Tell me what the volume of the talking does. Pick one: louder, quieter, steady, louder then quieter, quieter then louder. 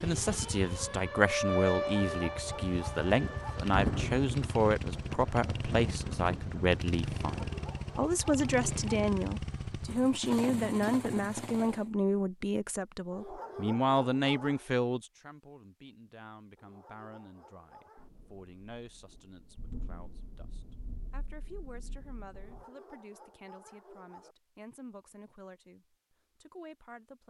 quieter.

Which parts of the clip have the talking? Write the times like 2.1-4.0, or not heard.
0.0-27.2.